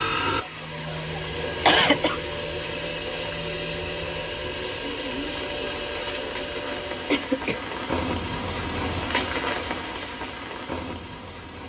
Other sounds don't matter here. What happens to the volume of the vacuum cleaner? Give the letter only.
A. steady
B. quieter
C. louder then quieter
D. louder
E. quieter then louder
A.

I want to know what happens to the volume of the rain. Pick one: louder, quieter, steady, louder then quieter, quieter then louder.
louder.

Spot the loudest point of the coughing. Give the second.
2 s.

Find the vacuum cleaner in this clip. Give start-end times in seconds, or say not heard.
0.0-7.2.